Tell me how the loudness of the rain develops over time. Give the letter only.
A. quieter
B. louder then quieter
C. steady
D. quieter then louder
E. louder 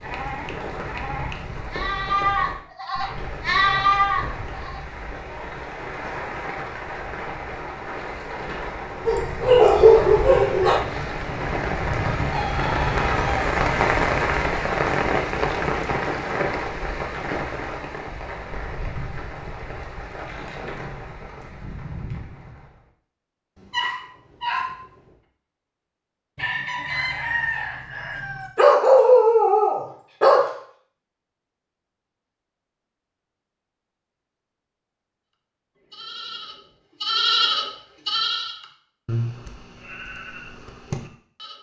B.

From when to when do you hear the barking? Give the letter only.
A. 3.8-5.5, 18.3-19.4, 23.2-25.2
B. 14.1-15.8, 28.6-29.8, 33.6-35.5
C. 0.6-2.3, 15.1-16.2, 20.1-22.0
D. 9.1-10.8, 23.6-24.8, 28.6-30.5
D.